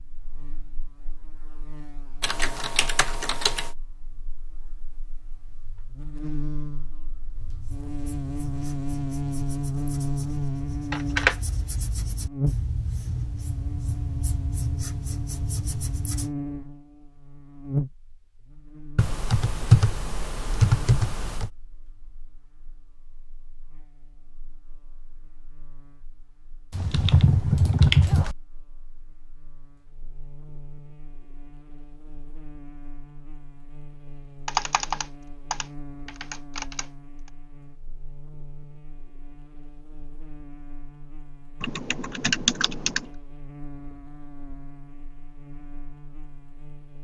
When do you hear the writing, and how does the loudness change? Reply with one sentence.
The writing can be heard from 7.3 to 16.4 s, getting louder.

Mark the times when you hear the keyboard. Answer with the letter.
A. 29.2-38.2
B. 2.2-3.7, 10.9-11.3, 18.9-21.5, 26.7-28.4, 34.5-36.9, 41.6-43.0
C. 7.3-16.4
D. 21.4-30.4
B.